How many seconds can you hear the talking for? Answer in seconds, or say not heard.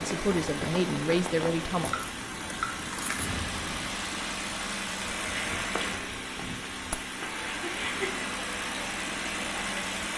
2 s.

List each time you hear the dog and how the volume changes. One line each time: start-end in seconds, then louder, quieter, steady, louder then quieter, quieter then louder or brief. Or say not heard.
not heard.